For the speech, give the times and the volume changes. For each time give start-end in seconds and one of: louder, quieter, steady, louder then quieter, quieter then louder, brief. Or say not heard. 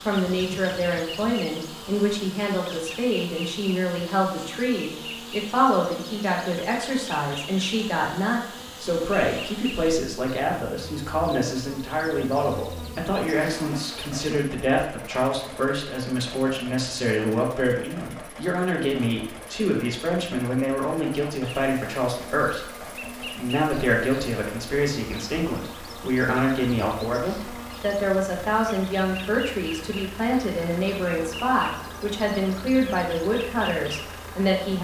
0.1-34.7 steady.